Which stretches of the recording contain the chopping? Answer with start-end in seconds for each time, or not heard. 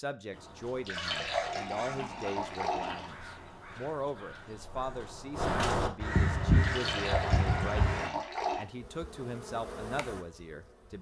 not heard.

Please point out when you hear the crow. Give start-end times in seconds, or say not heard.
0.3-8.1.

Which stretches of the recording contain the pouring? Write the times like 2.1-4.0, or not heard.
0.8-3.1, 6.6-8.7.